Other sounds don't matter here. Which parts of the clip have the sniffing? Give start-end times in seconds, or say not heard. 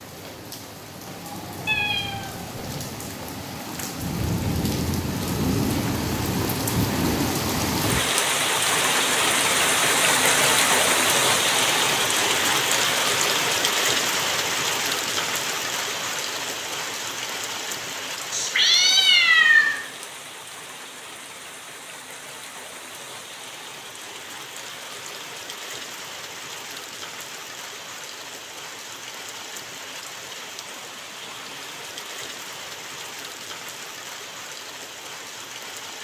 not heard.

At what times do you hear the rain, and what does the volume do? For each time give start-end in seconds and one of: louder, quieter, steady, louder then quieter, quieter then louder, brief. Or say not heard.
0.0-35.9 louder then quieter.